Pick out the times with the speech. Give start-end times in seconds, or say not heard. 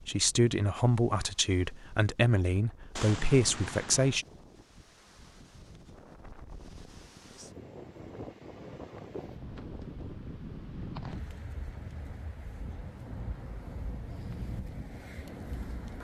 0.1-4.2.